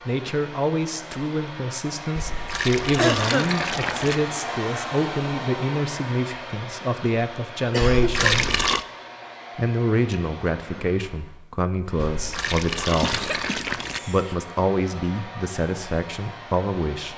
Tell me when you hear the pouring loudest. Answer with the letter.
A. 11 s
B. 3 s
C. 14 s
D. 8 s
D.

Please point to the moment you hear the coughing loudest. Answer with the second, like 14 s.
3 s.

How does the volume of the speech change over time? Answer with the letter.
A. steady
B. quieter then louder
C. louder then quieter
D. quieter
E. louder
A.